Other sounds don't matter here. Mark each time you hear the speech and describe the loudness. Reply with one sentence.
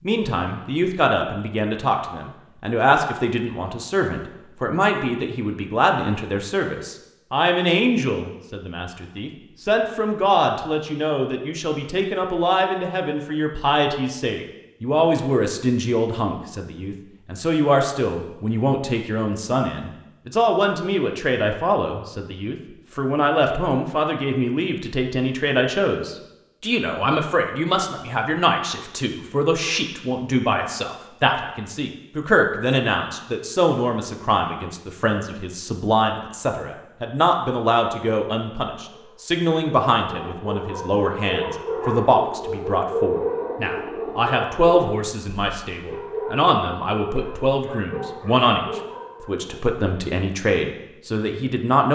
The speech can be heard from 0.0 to 51.9 s, at a steady volume.